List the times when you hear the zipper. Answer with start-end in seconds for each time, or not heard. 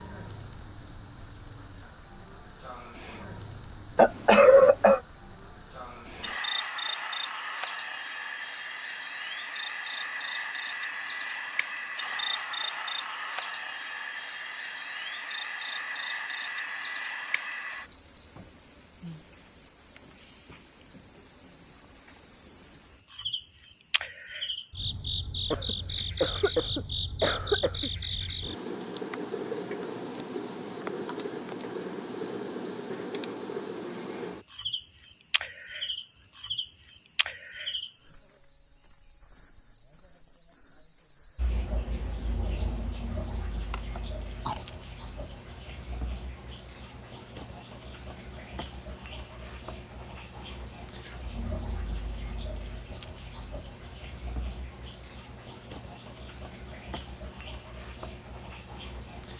not heard.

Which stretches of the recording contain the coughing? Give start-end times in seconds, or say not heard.
4.0-5.0, 25.5-27.9, 43.7-44.6.